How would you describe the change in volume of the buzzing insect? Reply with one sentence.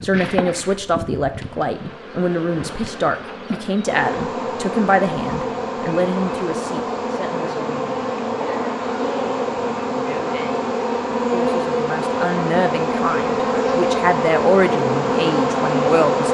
The loudness of the buzzing insect goes up.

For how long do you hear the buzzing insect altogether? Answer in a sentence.
You can hear the buzzing insect for 16 seconds altogether.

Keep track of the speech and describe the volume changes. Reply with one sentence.
The loudness of the speech goes down, then up.